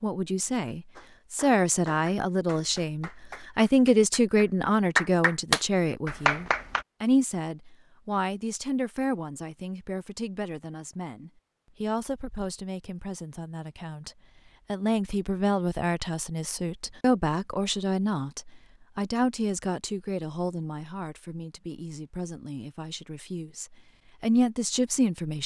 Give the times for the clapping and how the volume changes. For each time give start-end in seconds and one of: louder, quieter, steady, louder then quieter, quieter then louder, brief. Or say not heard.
0.9-6.8 quieter then louder.